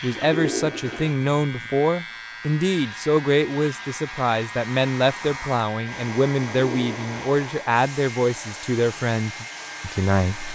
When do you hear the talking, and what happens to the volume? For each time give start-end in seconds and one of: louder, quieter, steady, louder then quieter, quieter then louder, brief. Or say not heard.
0.0-10.5 steady.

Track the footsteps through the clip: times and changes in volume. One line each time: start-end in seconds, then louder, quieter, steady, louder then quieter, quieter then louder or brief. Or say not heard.
not heard.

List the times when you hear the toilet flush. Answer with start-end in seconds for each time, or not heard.
0.1-1.2, 6.5-7.2.